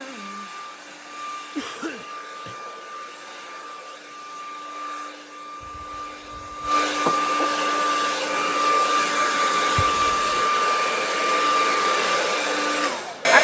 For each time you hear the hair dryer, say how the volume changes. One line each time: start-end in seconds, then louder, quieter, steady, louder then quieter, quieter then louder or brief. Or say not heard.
0.0-13.4 louder.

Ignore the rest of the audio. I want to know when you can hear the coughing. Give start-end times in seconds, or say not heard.
1.6-2.5, 5.6-7.5, 9.8-10.2.